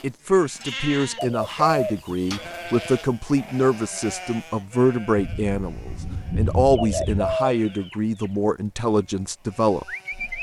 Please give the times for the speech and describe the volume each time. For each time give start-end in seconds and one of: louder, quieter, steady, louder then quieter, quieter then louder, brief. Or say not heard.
0.0-10.3 steady.